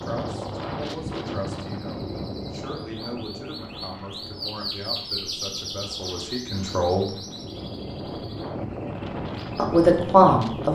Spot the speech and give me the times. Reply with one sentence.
You can hear the speech from 0.0 to 7.1 s and from 9.6 to 10.6 s.